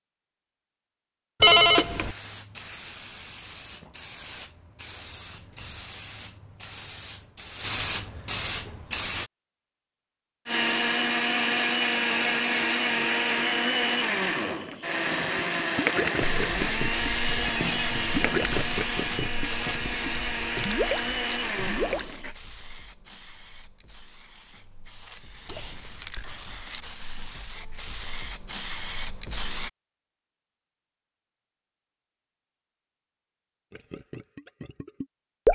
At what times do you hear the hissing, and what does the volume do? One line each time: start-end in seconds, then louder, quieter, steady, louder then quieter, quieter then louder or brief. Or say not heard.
1.6-9.3 louder
16.2-29.7 quieter then louder.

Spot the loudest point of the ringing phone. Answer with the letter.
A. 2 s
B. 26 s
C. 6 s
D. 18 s
A.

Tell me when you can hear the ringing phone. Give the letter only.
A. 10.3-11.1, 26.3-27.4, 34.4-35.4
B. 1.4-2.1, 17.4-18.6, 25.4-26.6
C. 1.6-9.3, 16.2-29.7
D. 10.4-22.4
B.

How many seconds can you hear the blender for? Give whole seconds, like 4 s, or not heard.
12 s.